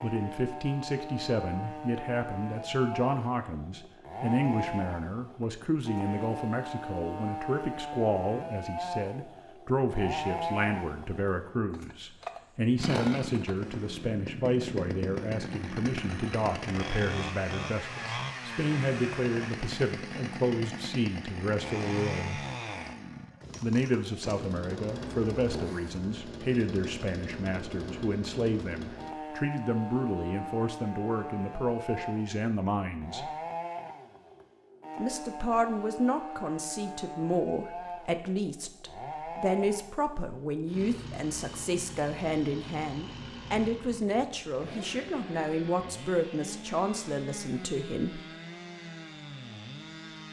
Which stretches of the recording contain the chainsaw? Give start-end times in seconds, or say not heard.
0.0-50.2.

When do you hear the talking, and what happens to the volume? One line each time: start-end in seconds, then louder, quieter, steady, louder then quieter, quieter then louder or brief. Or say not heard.
0.0-22.4 steady
23.6-33.3 steady
35.0-48.2 steady.